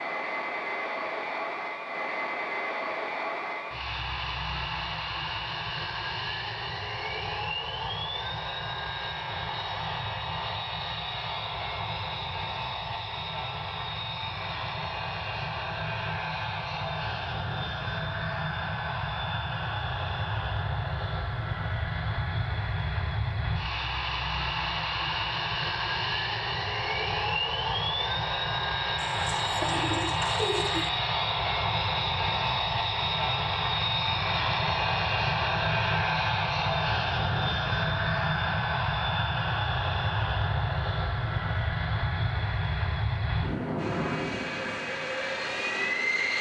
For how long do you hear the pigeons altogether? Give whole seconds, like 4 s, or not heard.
2 s.